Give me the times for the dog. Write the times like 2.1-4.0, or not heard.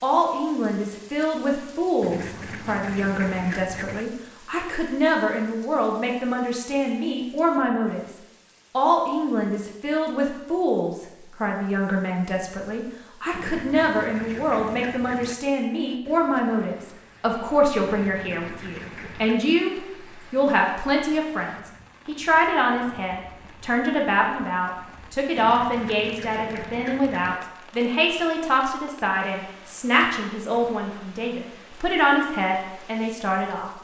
not heard.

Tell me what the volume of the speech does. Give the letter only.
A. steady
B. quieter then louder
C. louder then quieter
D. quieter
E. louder
A.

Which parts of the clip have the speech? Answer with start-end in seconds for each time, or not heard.
0.0-8.1, 8.8-33.7.